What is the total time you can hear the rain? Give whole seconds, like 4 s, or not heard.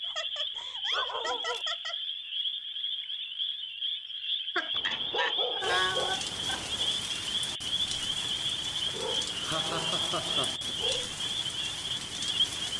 7 s.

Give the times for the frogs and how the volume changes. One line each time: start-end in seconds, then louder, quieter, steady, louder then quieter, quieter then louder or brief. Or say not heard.
0.0-12.7 steady.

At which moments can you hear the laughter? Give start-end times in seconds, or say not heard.
0.0-1.9, 4.5-6.6, 8.8-10.7.